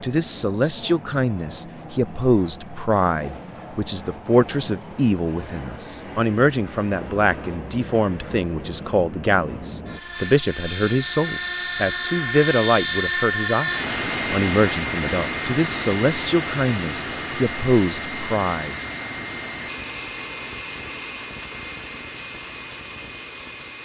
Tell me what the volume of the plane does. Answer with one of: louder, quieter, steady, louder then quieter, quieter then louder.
louder then quieter.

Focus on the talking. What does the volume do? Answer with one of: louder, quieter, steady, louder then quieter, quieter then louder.
steady.